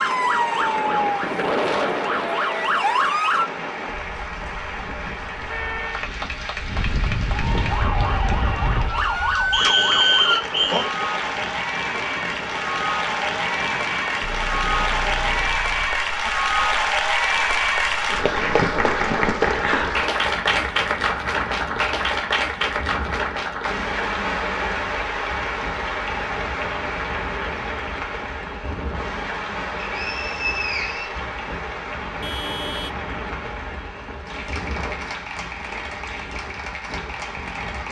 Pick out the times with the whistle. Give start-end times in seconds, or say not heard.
9.5-10.9, 29.8-31.2.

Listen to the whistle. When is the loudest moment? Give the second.
10 s.